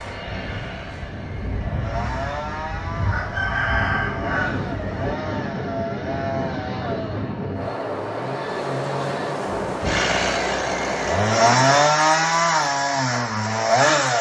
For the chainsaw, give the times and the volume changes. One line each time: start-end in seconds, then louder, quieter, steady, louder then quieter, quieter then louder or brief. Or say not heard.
0.0-14.1 louder.